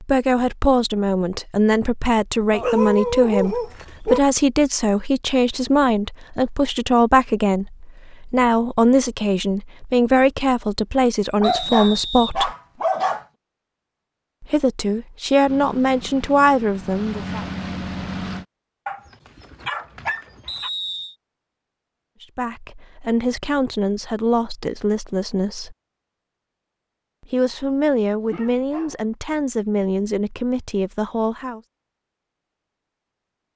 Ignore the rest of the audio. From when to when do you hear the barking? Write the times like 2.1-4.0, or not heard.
2.5-4.2, 11.4-13.2, 18.9-20.7, 27.9-28.9.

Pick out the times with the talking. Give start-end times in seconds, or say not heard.
0.0-12.5, 14.4-17.4, 22.2-25.8, 27.3-31.6.